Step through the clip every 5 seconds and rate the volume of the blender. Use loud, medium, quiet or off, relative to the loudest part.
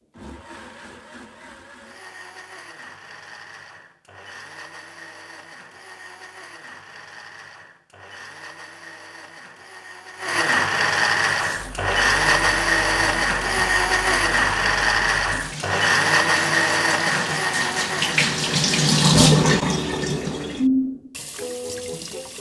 quiet, quiet, loud, loud, off.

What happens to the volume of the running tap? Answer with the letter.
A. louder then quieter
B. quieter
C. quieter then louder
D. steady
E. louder
A.